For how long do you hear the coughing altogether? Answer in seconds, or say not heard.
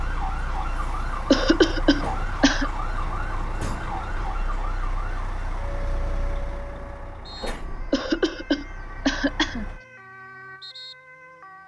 3 s.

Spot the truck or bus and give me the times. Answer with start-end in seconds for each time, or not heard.
0.0-9.8.